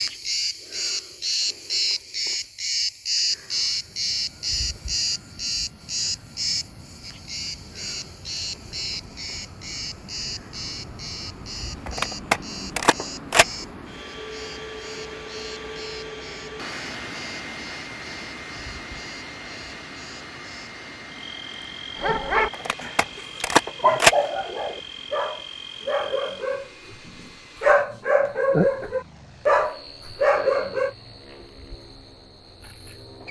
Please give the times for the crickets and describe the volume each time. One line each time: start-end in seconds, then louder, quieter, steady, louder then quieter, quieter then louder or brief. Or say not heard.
0.0-33.2 quieter then louder.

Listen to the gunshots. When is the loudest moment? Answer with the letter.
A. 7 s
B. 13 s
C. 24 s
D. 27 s
C.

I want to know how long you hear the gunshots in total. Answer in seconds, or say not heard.
3 s.